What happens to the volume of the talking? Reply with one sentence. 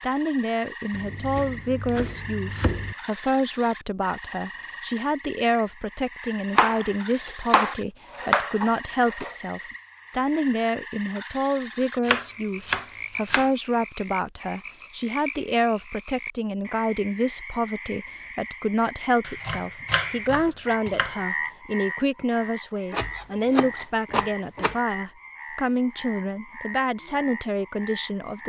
The volume of the talking stays about the same.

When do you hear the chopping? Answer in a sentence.
The chopping can be heard from 0.9 to 3.0 s, from 6.5 to 9.3 s, from 12.1 to 13.5 s, from 19.2 to 21.1 s and from 22.9 to 24.8 s.